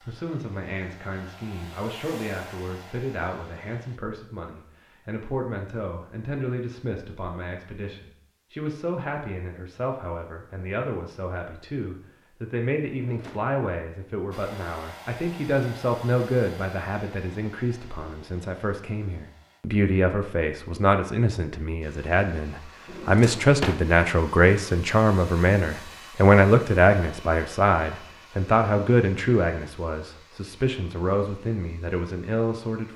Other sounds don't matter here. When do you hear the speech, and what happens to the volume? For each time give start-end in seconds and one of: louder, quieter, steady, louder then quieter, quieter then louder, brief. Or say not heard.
0.0-32.9 louder.